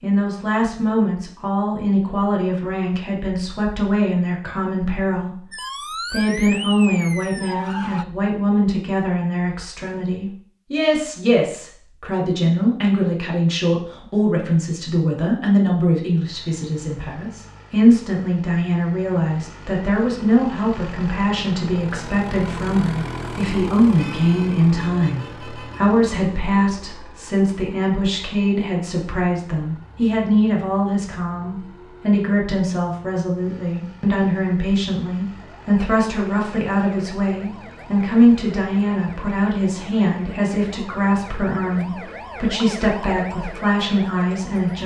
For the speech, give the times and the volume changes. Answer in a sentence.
The speech can be heard from 0.0 to 5.4 s, at a steady volume; and from 6.1 to 44.8 s, at a steady volume.